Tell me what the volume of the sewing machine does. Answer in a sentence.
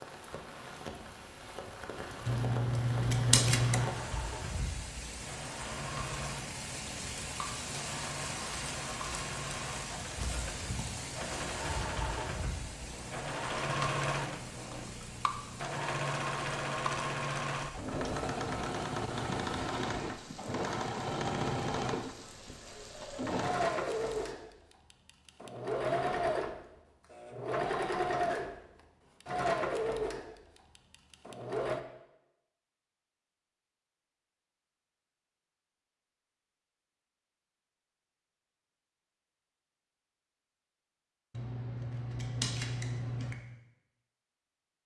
The loudness of the sewing machine goes up.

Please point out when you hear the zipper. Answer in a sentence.
You can't hear the zipper here.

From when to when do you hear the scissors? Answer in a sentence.
The scissors can be heard from 2.2 to 4.0 s and from 41.3 to 43.4 s.